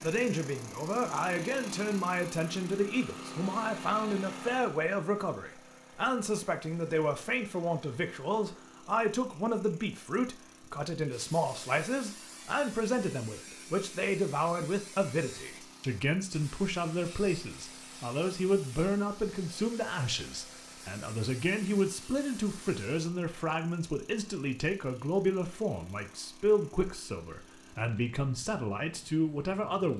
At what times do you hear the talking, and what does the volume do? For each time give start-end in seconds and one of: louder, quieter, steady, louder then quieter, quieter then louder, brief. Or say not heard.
0.0-29.9 steady.